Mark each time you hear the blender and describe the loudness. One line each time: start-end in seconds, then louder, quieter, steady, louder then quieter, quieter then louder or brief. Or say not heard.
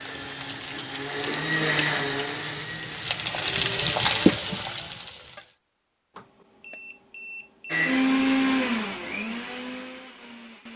0.0-4.4 louder then quieter
7.7-10.7 brief.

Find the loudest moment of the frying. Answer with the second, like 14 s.
4 s.